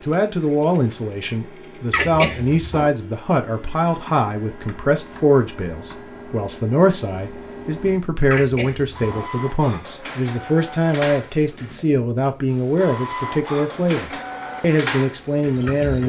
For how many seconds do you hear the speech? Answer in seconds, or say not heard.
16 s.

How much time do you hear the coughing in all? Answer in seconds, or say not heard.
2 s.